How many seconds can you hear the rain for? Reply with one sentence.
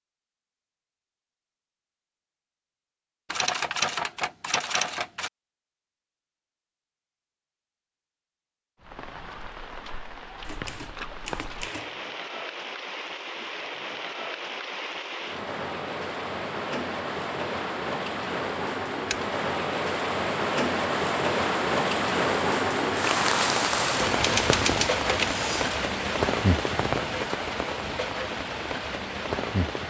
The rain can be heard for 21 seconds in total.